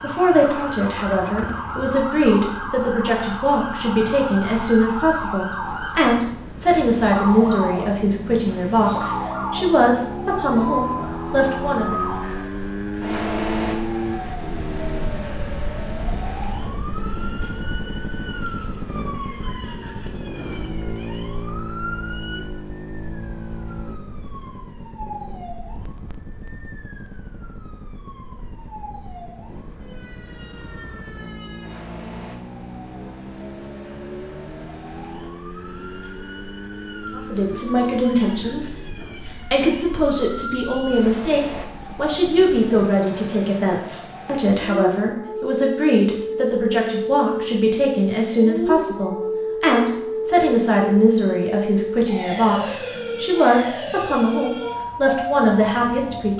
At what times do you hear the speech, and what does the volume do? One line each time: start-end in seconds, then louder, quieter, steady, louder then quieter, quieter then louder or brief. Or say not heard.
0.0-12.0 steady
37.1-56.3 steady.